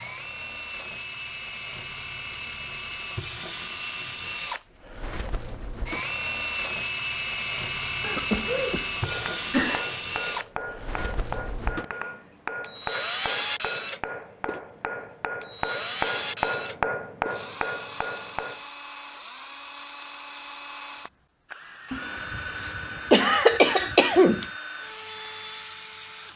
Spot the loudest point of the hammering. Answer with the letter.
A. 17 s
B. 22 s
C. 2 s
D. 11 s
A.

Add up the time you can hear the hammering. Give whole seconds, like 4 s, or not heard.
10 s.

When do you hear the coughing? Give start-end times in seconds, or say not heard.
8.0-9.8, 21.9-24.6.